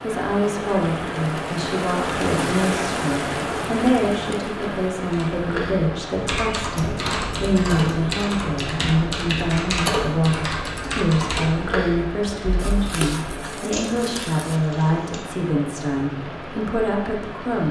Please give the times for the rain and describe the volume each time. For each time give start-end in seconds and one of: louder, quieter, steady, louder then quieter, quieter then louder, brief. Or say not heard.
0.0-17.6 quieter.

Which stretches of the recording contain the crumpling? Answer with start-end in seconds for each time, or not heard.
12.6-14.6.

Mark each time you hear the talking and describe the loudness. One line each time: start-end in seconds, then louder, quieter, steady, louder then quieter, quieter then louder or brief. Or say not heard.
0.0-17.6 steady.